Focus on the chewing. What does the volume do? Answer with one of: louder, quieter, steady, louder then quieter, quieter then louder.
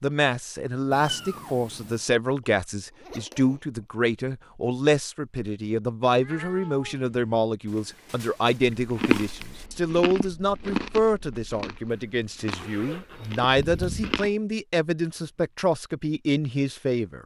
louder then quieter.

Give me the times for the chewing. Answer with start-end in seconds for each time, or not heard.
8.8-14.3.